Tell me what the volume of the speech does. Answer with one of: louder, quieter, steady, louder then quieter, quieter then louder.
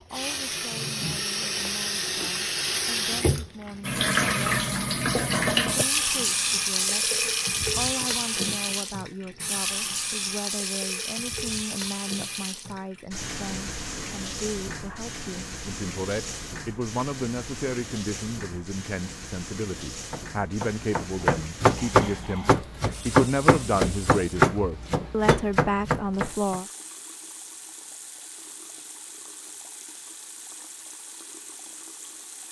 louder.